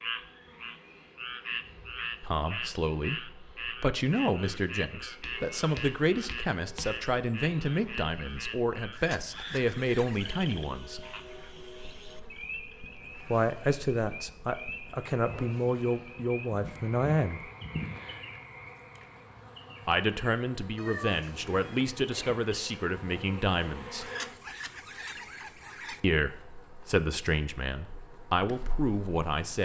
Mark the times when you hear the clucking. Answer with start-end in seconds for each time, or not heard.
8.9-10.4, 24.0-26.0.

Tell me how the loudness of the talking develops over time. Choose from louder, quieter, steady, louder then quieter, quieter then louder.
steady.